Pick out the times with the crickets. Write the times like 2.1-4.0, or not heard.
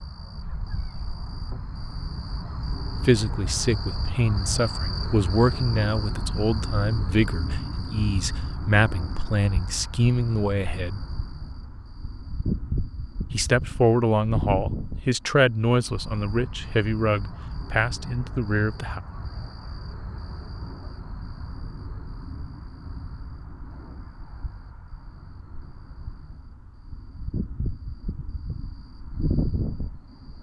0.0-30.3.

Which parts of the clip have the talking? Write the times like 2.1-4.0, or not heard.
3.0-11.0, 13.3-19.0.